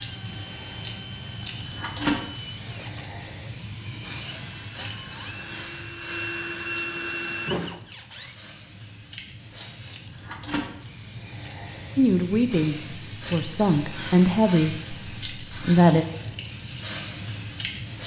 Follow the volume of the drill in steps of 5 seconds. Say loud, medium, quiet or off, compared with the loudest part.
medium, loud, off, off.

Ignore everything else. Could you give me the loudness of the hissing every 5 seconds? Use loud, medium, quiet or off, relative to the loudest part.
loud, medium, loud, loud.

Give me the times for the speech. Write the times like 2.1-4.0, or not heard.
11.9-16.1.